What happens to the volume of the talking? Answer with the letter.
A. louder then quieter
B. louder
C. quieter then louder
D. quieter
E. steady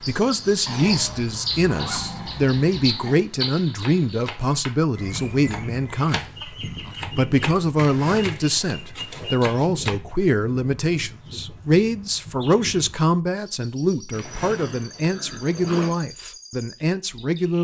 E.